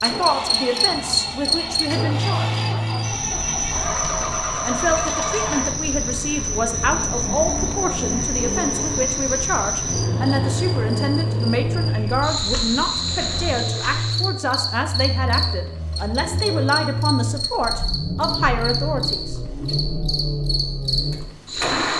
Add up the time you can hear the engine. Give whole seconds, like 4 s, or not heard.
22 s.